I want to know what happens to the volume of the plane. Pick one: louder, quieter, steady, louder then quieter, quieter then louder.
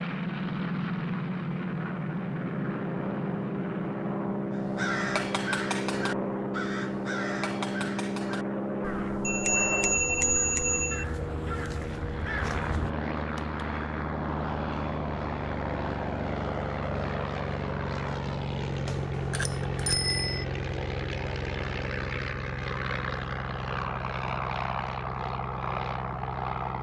steady.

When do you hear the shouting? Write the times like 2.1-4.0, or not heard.
not heard.